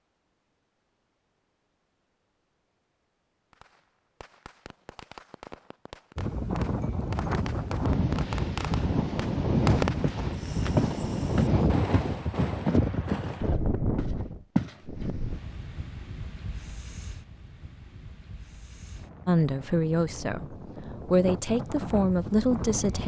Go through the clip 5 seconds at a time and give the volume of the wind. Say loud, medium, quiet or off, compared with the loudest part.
off, loud, loud, quiet, medium.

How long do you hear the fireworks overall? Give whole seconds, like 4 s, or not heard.
10 s.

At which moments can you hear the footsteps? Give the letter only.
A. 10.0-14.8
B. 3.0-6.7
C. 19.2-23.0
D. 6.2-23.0
A.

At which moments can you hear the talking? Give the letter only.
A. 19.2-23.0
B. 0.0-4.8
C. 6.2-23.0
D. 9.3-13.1
A.